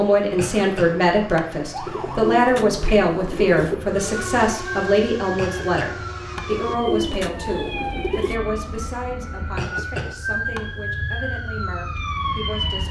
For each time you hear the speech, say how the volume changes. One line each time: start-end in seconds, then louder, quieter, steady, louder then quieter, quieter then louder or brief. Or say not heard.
0.0-12.8 quieter.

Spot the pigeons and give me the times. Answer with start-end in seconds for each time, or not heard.
1.9-3.8, 6.5-8.4.